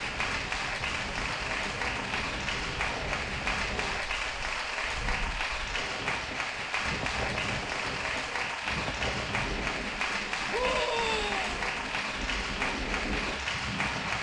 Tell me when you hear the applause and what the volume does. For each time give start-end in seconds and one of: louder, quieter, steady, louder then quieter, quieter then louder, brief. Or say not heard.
0.0-14.1 steady.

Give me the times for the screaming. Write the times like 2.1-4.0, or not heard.
10.5-11.6.